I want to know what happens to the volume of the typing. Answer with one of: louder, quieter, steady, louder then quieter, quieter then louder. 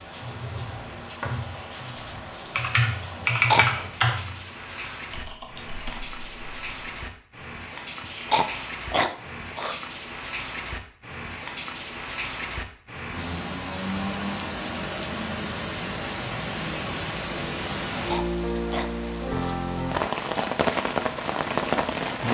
louder then quieter.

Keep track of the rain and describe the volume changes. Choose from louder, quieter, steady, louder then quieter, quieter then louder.
louder.